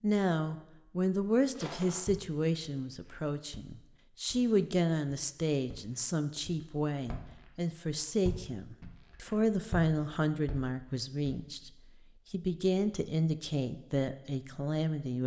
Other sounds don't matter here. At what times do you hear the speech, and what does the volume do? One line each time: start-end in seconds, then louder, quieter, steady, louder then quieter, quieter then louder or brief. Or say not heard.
0.0-15.2 steady.